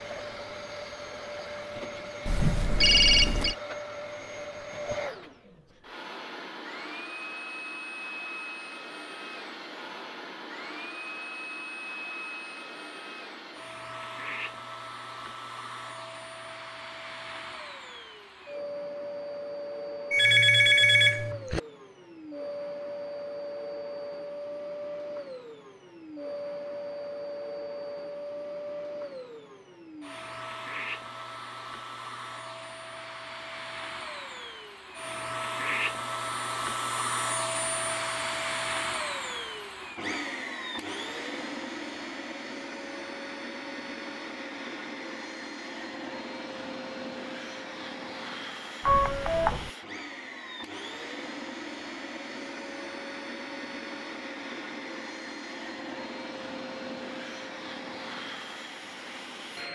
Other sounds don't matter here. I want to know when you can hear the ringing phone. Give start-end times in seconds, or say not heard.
2.2-3.5, 20.1-21.6, 48.9-49.7.